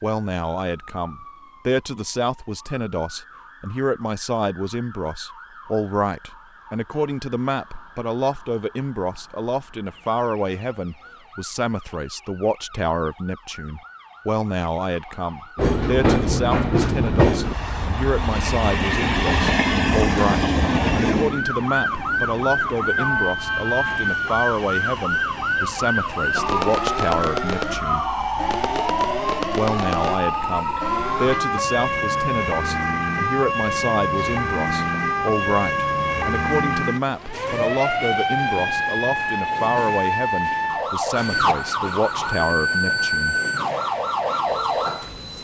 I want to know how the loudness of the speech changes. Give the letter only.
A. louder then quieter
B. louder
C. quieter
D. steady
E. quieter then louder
D.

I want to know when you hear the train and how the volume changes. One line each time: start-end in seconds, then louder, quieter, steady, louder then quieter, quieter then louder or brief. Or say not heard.
15.6-45.3 quieter.